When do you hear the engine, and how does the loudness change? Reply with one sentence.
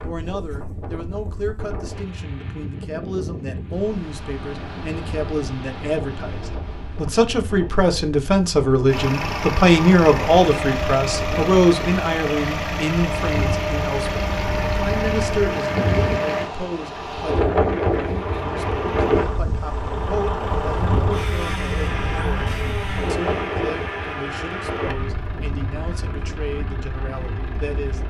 The engine can be heard from 8.8 to 16.5 s, at a steady volume; and from 18.1 to 28.0 s, getting quieter.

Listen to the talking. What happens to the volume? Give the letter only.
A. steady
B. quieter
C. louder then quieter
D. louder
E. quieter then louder
C.